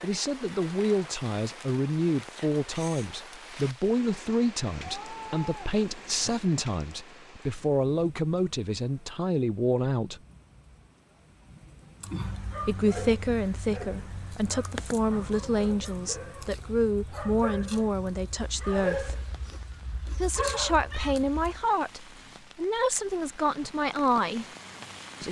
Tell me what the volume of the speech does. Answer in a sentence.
The volume of the speech stays about the same.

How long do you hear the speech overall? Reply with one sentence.
The speech can be heard for 21 seconds in total.